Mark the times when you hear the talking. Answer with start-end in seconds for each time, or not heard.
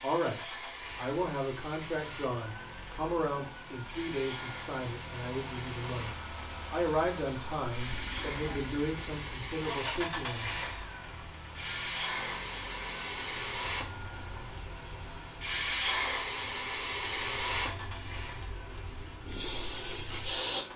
0.0-10.5.